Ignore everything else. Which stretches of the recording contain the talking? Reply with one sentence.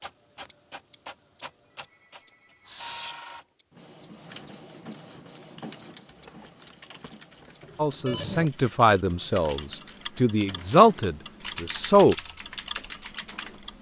The talking can be heard from 7.8 to 12.2 s.